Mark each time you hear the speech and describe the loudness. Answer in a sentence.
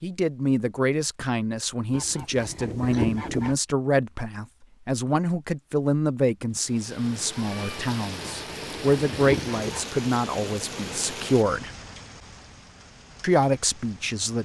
You can hear the speech from 0.0 to 11.7 s, at a steady volume; and briefly from 13.2 to 14.4 s.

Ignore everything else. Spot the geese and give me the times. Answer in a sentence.
You can hear the geese from 1.9 to 3.6 s and from 8.2 to 9.9 s.